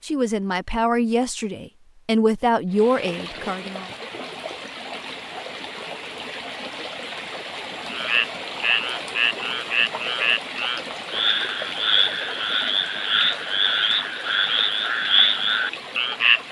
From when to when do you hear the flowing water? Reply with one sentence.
The flowing water can be heard from 2.6 to 16.4 s.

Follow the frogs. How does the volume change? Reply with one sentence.
The volume of the frogs stays about the same.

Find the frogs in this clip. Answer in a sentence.
You can hear the frogs from 7.8 to 16.4 s.